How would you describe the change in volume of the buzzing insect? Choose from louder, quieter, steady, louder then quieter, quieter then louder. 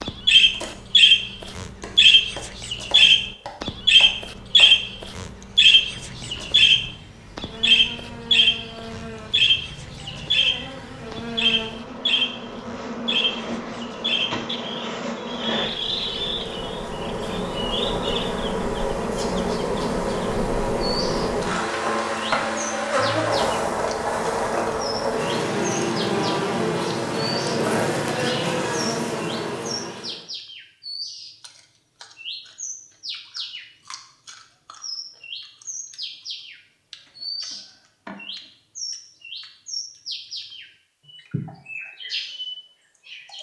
louder.